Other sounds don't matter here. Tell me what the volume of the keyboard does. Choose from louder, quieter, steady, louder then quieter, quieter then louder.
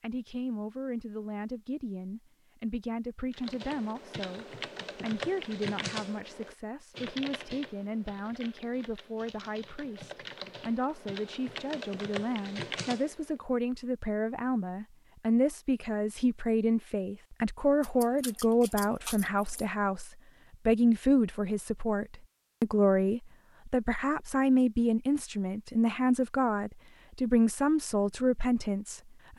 quieter then louder.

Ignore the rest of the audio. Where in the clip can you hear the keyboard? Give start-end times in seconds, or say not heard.
3.3-13.4.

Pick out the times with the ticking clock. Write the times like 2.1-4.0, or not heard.
not heard.